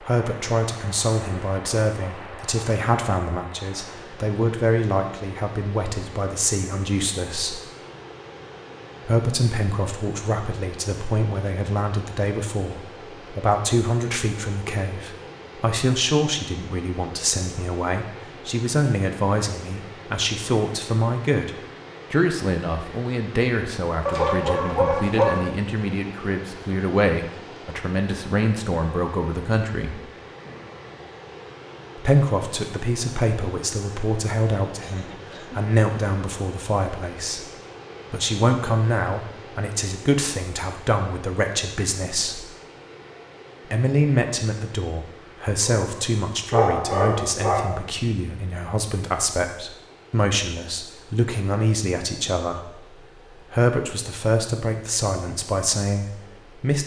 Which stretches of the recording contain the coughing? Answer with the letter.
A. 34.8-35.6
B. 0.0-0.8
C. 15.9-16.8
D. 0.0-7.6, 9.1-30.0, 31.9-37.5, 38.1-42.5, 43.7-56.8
A.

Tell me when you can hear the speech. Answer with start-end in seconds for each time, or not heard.
0.0-7.6, 9.1-30.0, 31.9-37.5, 38.1-42.5, 43.7-56.8.